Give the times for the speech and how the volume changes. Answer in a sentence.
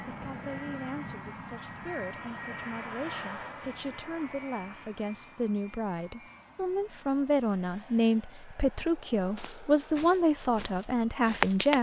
You can hear the speech from 0.1 to 11.7 s, getting louder.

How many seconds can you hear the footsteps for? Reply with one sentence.
You can hear the footsteps for 2 seconds altogether.